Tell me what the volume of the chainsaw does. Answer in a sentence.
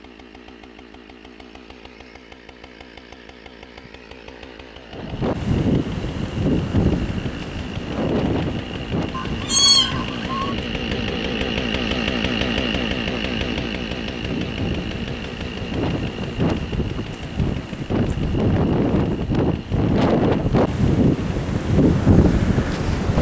The loudness of the chainsaw goes up, then down.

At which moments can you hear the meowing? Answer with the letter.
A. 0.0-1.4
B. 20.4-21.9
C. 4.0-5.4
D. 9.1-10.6
D.